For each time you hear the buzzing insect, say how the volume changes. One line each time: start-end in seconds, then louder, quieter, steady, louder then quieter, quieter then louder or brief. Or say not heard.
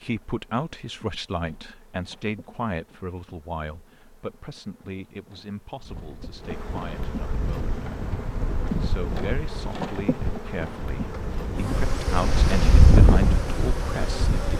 0.0-14.5 louder.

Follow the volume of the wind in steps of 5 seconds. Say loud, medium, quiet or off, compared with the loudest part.
off, medium, loud.